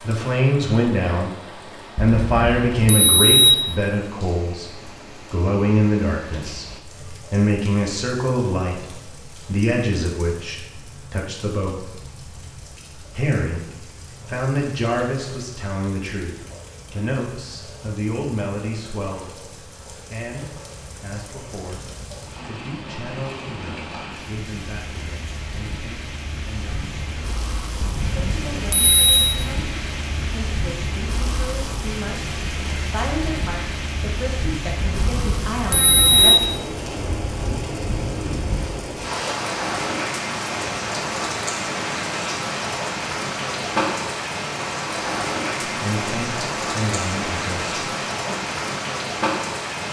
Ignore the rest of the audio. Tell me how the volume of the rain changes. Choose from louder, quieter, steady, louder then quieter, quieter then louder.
louder.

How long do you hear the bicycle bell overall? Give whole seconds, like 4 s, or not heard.
5 s.